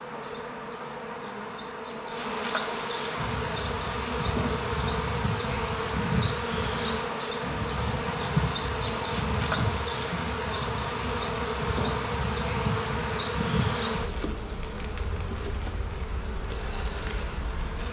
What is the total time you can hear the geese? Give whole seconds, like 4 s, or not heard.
11 s.